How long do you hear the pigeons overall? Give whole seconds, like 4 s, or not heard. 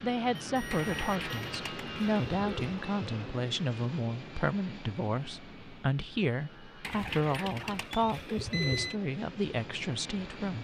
4 s.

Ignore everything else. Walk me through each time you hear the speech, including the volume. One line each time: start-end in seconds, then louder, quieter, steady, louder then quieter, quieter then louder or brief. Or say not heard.
0.0-10.6 steady.